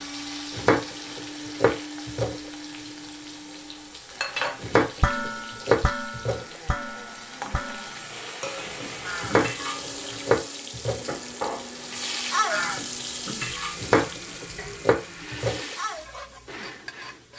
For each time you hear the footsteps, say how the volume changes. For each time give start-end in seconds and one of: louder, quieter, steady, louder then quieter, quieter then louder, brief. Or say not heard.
not heard.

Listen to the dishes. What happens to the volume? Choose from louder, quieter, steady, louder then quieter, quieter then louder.
quieter.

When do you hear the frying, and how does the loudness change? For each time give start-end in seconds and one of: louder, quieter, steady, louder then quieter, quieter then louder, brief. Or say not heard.
0.0-17.3 louder then quieter.